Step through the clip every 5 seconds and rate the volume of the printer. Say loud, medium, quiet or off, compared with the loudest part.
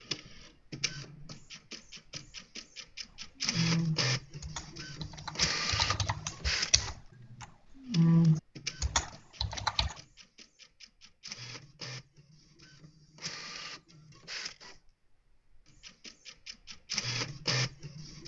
loud, loud, medium, loud.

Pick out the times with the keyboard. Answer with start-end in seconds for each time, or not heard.
3.5-9.9.